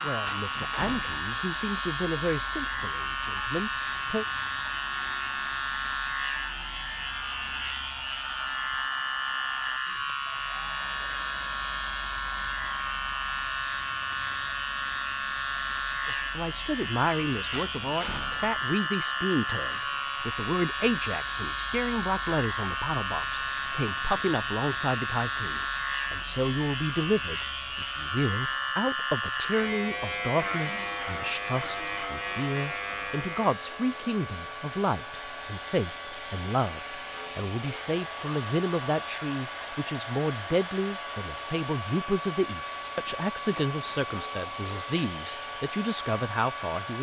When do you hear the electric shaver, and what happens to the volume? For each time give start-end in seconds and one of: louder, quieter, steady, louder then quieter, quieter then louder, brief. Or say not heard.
0.0-46.9 quieter.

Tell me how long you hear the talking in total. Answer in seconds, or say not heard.
35 s.